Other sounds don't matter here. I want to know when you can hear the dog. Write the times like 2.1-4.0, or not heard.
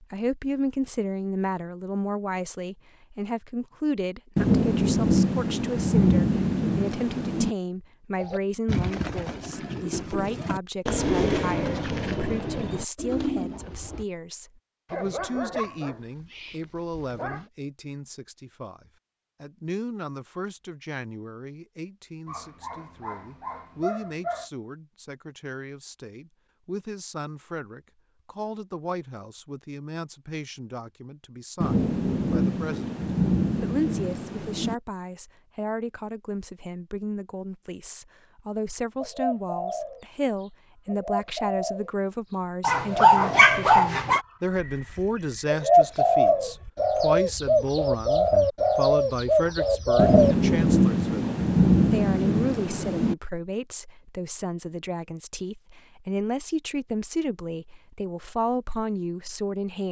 14.8-17.4, 22.2-24.5, 42.6-44.2.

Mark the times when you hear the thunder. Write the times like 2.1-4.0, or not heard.
4.3-7.5, 31.6-34.8, 50.0-53.1.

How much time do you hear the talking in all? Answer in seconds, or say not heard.
59 s.